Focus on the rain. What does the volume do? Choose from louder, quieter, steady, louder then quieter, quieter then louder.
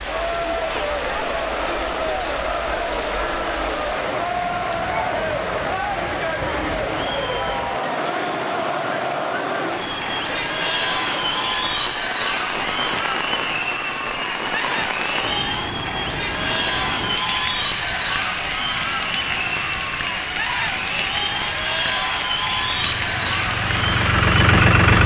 steady.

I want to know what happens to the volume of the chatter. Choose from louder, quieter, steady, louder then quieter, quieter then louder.
steady.